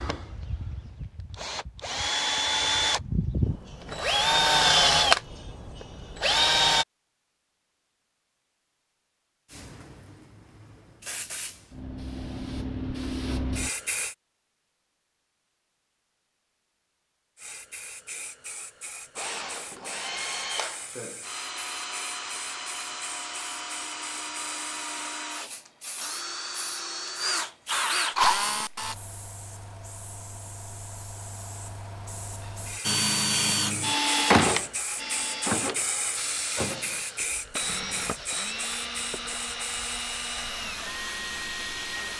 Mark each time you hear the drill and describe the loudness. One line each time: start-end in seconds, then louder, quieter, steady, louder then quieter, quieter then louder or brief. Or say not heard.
0.0-6.8 louder then quieter
19.1-28.9 louder
32.8-42.1 quieter.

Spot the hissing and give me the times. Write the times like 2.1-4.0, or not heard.
9.5-14.2, 17.4-42.1.